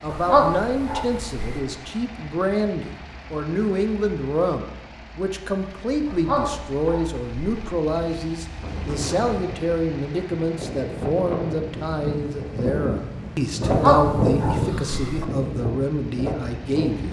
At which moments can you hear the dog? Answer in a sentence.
You can hear the dog from 0.1 to 1.6 s, from 6.0 to 7.7 s and from 13.6 to 15.2 s.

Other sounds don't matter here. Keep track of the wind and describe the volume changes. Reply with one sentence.
The loudness of the wind goes up, then down.